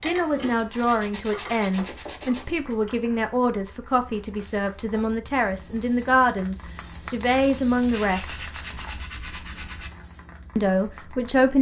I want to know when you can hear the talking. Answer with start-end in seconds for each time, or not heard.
0.0-8.4, 10.6-11.5.